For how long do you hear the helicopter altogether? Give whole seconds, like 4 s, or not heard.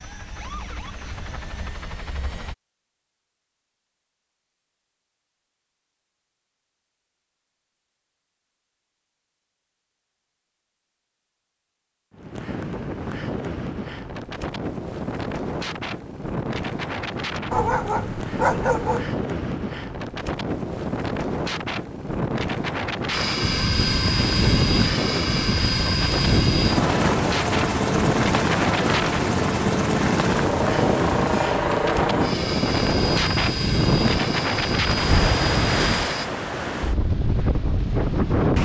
16 s.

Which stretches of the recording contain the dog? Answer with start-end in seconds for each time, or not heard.
17.5-19.1.